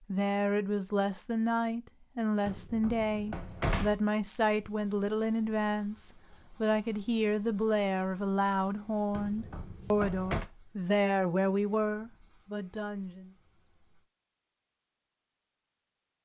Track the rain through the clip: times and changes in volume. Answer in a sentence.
The rain can't be heard in this clip.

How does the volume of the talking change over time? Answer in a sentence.
The loudness of the talking stays about the same.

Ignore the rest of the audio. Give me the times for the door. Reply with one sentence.
You can hear the door from 2.5 to 4.0 s and from 9.1 to 10.4 s.